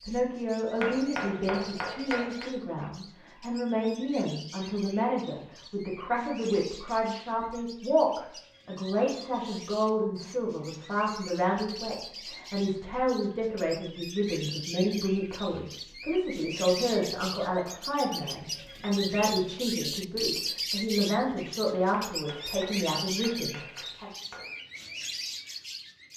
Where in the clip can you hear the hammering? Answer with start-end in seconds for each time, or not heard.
0.8-2.5, 22.1-24.6.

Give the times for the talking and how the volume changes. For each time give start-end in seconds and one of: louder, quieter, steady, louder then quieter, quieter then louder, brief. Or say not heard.
0.0-24.1 steady.